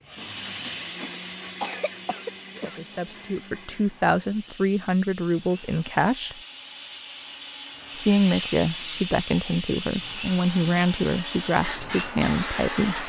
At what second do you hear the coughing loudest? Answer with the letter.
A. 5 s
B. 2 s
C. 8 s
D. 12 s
B.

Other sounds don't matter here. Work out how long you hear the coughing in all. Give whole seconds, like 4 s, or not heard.
2 s.